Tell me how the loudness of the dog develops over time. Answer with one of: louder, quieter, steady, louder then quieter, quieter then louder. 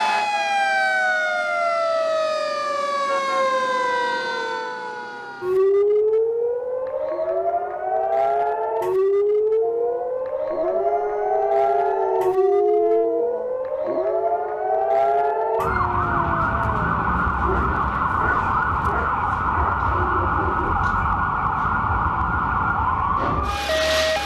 quieter.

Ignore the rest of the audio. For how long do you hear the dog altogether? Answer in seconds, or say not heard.
11 s.